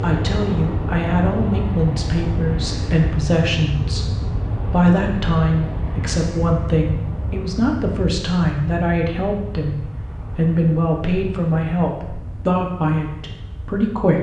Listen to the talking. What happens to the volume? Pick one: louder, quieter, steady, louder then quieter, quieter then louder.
steady.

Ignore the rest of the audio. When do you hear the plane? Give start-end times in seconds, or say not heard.
0.0-14.0.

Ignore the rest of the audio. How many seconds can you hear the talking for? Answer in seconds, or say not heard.
14 s.